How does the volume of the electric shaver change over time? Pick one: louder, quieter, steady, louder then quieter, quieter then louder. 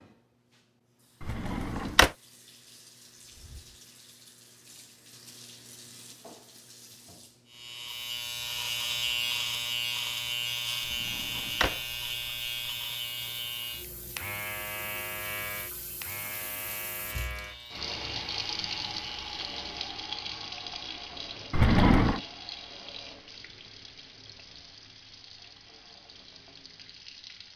quieter.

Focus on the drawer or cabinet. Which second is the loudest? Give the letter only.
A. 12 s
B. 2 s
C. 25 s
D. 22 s
D.